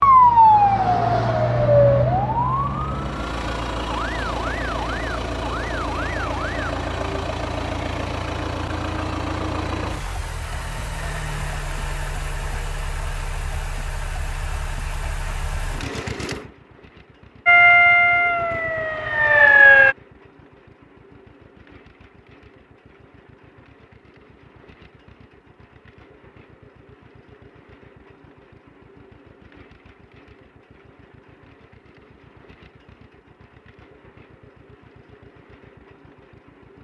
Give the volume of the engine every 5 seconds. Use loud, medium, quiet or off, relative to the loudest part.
loud, loud, medium, medium, quiet, quiet, quiet, quiet.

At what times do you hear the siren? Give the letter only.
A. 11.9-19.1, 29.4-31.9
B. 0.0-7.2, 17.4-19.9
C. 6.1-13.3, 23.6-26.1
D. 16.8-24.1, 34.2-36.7
B.